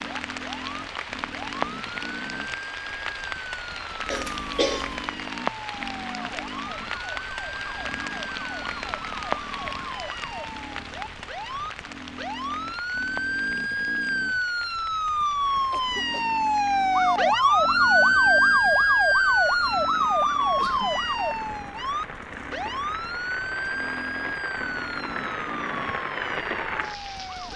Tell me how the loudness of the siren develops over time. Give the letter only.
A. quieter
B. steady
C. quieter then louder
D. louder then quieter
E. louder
D.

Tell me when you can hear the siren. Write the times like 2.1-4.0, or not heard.
0.0-27.5.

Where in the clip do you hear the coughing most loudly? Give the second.
5 s.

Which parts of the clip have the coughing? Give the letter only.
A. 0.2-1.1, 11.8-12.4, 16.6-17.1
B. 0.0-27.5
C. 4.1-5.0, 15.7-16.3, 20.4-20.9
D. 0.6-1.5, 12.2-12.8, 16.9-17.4
C.